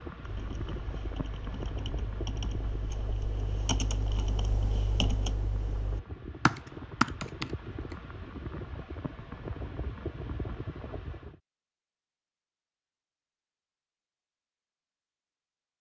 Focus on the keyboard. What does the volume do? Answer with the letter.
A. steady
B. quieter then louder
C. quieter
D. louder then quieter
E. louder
E.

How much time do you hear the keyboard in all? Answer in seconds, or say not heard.
8 s.